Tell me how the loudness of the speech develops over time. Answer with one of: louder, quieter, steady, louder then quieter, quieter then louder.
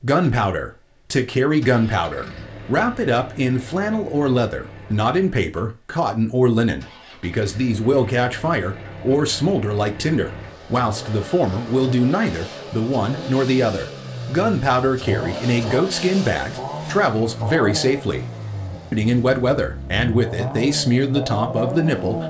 steady.